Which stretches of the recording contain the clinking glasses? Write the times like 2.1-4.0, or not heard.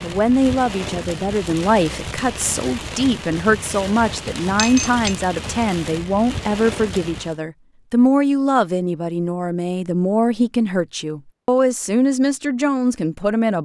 4.5-5.2.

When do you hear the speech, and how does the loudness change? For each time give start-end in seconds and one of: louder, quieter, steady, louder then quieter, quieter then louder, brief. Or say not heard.
0.0-13.6 steady.